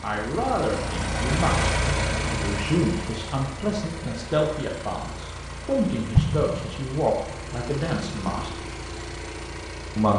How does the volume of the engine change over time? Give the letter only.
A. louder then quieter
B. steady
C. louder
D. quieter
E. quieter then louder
D.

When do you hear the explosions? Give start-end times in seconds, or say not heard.
6.1-6.8.